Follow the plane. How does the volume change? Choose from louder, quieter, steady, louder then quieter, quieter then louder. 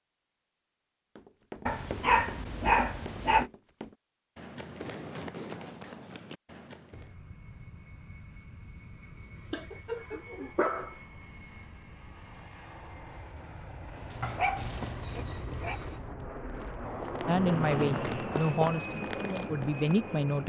louder.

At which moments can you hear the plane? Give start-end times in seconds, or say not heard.
6.9-20.4.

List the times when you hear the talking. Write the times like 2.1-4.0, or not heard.
17.2-20.4.